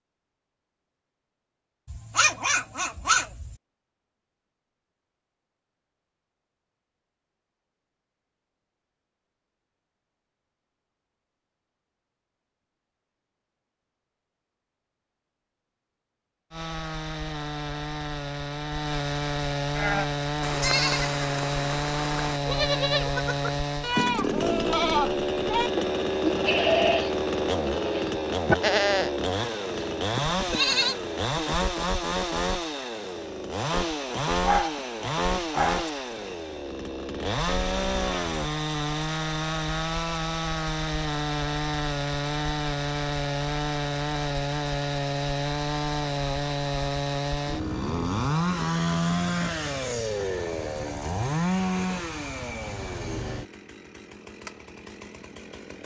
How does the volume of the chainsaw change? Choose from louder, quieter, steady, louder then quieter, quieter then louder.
steady.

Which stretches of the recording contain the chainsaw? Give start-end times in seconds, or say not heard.
16.5-55.8.